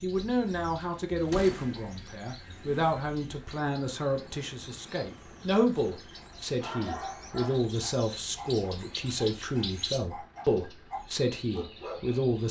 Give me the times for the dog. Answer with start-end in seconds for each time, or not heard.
6.1-12.2.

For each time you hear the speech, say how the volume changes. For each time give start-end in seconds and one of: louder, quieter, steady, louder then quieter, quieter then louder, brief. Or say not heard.
0.0-12.4 steady.